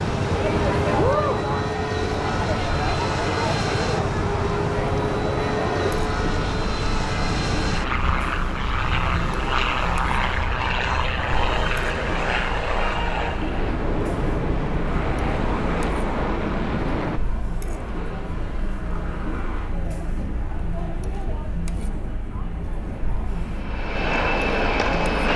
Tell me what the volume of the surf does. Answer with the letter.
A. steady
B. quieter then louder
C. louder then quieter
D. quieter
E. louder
D.